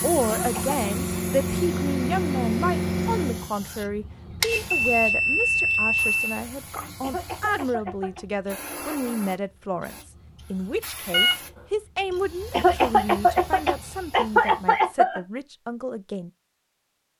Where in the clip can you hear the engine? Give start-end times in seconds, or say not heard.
0.0-3.5.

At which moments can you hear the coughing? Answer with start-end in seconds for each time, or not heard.
0.2-0.8, 7.0-8.2, 12.5-15.2.